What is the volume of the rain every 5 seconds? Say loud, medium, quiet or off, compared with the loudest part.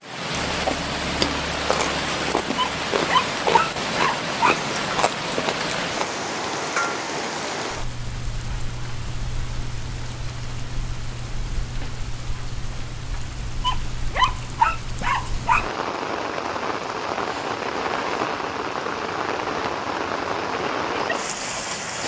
loud, loud, medium, loud, loud.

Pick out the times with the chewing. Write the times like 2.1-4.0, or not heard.
0.5-6.0.